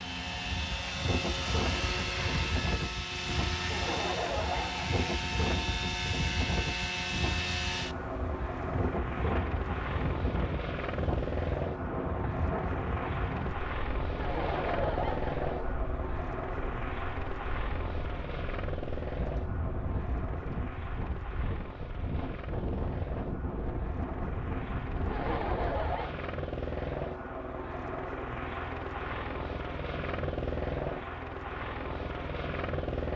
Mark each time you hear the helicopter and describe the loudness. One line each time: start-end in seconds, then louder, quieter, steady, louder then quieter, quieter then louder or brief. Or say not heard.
0.0-33.1 quieter then louder.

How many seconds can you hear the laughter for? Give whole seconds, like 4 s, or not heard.
4 s.